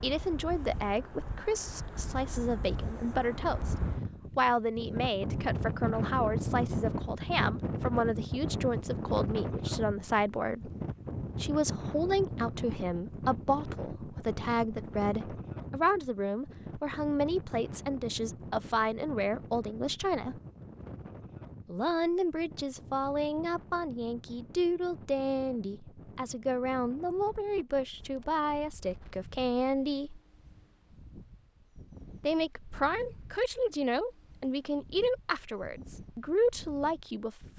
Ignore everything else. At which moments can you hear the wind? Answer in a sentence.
The wind can be heard from 0.0 to 37.5 s.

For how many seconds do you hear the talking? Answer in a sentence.
You can hear the talking for 33 seconds altogether.